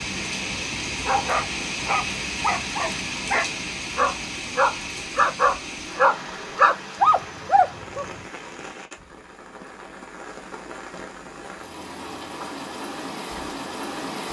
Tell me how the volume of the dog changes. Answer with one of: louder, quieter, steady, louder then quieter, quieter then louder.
louder.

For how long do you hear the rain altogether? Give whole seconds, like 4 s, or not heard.
14 s.